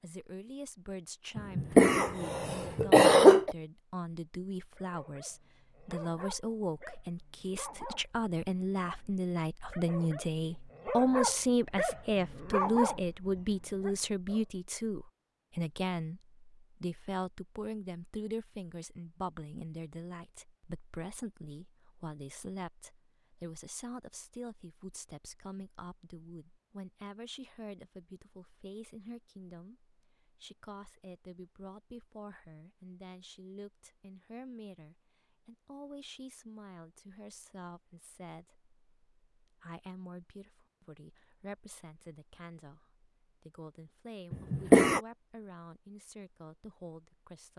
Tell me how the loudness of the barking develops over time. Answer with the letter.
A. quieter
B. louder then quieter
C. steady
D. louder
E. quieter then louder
D.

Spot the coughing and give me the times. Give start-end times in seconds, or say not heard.
1.4-3.5, 44.3-45.0.